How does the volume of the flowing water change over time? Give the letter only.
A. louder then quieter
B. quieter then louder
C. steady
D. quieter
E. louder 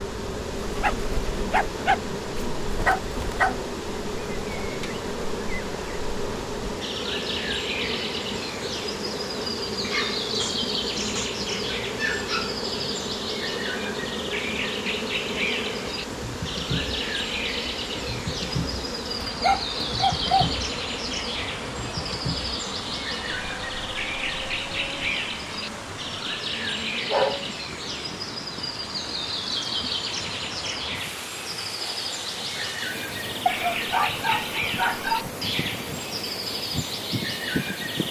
C.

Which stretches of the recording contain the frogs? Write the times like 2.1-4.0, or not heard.
not heard.